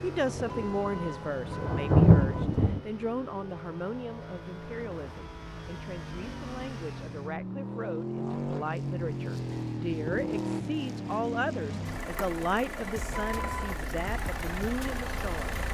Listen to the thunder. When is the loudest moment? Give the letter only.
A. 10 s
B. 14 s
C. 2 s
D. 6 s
C.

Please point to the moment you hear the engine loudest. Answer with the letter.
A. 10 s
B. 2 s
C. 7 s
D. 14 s
A.